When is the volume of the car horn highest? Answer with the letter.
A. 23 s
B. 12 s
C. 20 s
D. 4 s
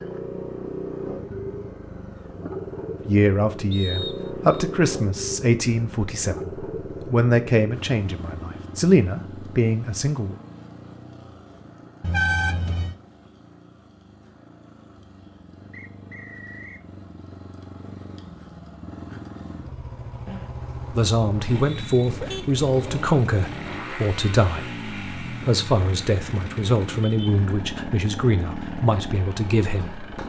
B.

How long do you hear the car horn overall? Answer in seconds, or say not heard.
2 s.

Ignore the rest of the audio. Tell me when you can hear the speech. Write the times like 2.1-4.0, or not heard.
3.0-10.3, 20.9-29.9.